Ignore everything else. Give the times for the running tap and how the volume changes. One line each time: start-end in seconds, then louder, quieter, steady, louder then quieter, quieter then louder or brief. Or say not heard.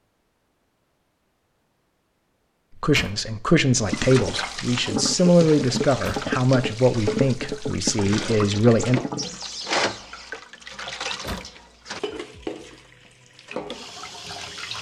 3.9-14.7 quieter.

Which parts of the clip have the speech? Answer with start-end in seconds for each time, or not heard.
2.8-9.0.